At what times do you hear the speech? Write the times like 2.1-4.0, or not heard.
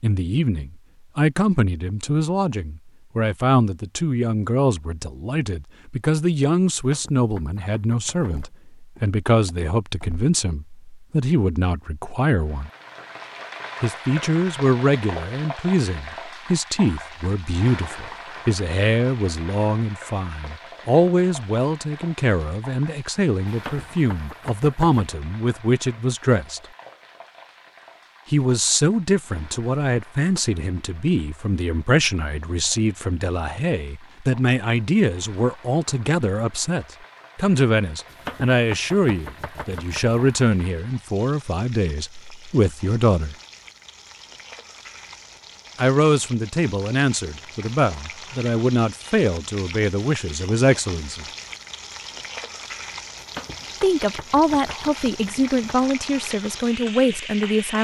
0.0-12.7, 13.8-26.6, 28.3-43.4, 45.8-51.2, 53.8-57.7.